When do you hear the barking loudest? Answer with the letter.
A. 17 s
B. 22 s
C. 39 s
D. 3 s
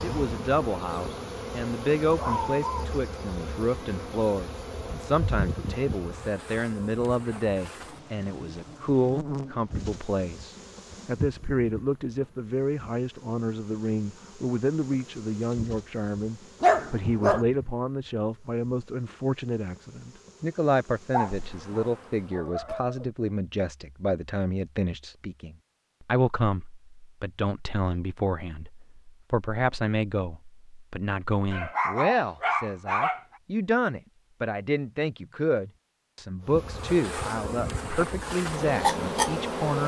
A.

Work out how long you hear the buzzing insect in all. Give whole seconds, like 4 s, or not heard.
26 s.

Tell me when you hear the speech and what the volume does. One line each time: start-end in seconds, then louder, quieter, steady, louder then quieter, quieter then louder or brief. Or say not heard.
0.0-39.8 steady.